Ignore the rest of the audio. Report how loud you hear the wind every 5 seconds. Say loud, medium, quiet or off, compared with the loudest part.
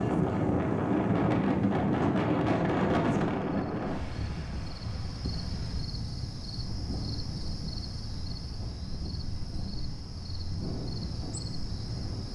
loud, quiet, quiet.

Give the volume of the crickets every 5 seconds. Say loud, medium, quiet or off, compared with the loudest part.
medium, loud, loud.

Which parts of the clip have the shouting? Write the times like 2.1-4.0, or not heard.
not heard.